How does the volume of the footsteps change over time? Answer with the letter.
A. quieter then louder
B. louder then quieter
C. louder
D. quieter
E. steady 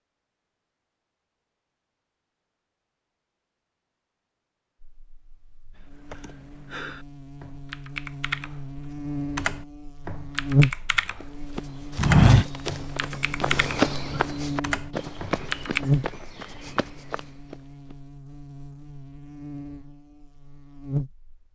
D.